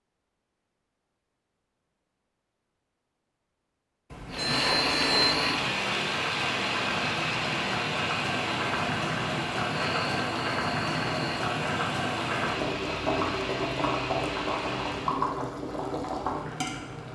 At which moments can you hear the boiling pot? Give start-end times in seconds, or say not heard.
4.7-17.1.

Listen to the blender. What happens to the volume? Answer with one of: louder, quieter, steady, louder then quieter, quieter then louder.
quieter.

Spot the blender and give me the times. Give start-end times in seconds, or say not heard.
4.3-15.2.